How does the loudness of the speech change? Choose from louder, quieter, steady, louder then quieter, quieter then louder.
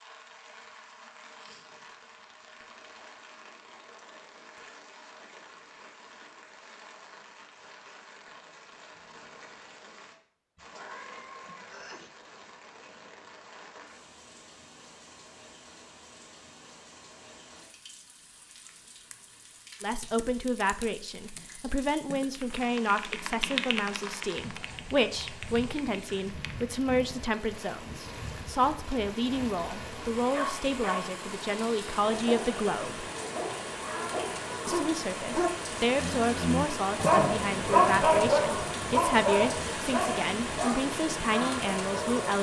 steady.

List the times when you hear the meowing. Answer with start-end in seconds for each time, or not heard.
10.6-12.1.